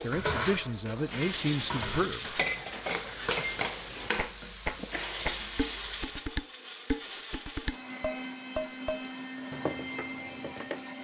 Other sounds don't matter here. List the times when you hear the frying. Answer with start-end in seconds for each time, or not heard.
0.0-6.2.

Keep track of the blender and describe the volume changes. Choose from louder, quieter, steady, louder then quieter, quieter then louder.
steady.